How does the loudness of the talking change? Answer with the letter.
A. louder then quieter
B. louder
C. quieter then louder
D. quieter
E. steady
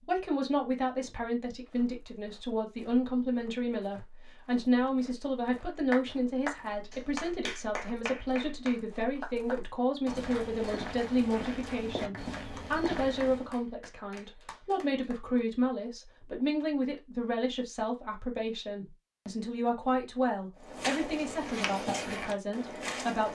E.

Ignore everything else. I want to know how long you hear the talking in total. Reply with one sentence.
You can hear the talking for 23 seconds altogether.